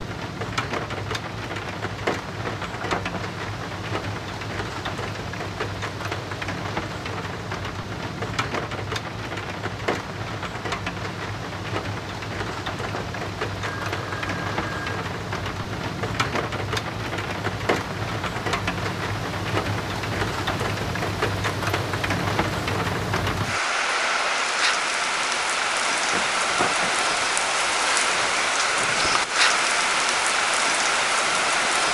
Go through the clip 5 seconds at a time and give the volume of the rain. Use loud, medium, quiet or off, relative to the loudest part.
medium, medium, medium, medium, loud, loud, loud.